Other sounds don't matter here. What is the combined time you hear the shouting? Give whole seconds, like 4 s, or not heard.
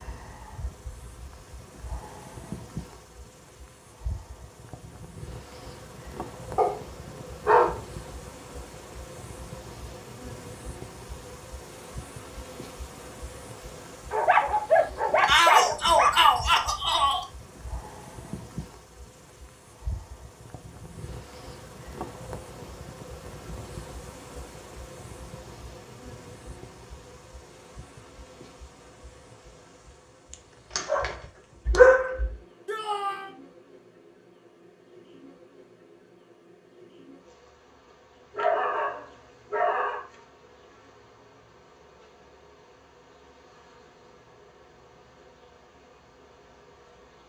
3 s.